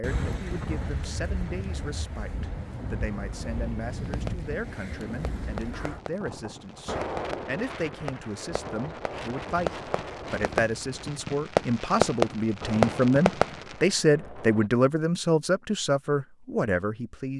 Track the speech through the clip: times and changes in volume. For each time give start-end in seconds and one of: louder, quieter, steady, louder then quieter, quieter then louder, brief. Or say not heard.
0.0-17.3 louder.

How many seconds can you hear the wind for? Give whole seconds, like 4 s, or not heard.
15 s.